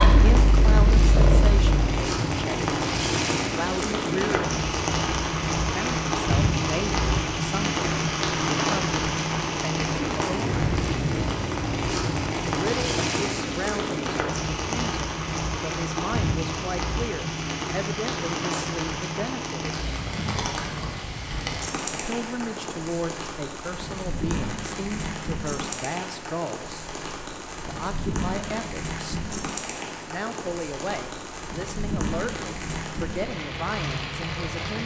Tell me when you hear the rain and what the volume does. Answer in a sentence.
You can hear the rain from 0.0 to 34.8 s, getting quieter.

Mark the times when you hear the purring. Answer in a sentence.
The purring can be heard from 0.0 to 1.9 s.